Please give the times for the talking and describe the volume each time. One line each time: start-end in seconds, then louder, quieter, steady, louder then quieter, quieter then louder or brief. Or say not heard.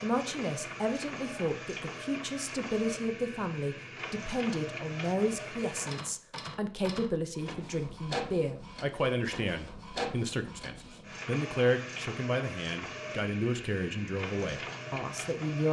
0.0-15.6 steady.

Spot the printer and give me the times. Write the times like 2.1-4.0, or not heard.
0.0-15.6.